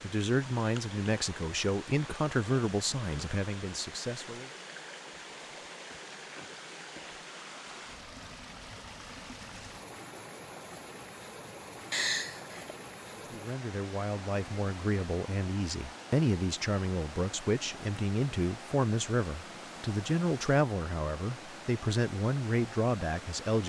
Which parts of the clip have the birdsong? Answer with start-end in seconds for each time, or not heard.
not heard.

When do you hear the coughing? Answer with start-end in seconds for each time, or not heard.
11.9-12.8.